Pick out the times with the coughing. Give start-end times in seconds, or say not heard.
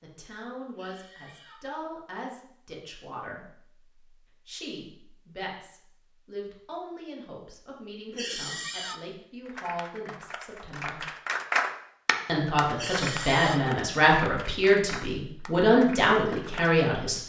0.7-1.7, 8.1-9.1, 12.7-13.7.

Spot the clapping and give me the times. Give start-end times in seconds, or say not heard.
9.4-16.9.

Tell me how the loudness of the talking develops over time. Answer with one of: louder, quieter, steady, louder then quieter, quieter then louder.
louder.